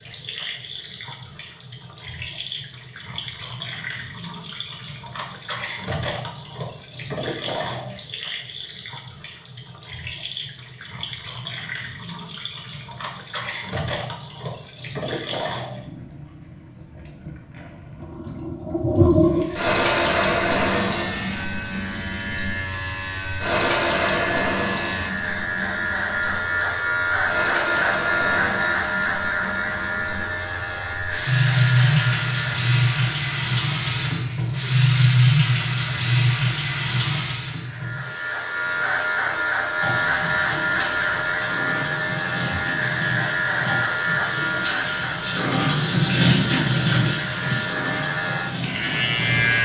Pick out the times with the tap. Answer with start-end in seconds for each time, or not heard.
0.0-49.6.